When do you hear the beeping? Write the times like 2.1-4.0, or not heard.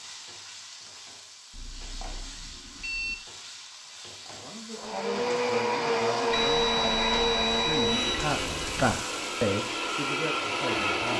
1.5-3.1, 6.3-8.9.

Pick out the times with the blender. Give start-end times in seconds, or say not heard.
4.8-11.1.